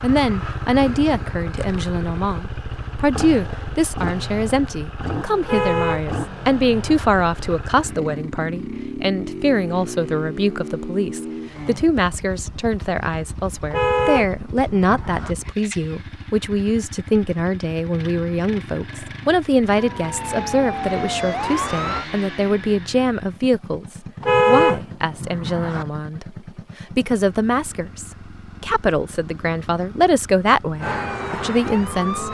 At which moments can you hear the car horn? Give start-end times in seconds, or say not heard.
5.4-7.1, 13.7-15.3, 24.2-25.9.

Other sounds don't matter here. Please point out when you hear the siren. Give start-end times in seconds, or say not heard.
19.8-22.1, 30.8-32.2.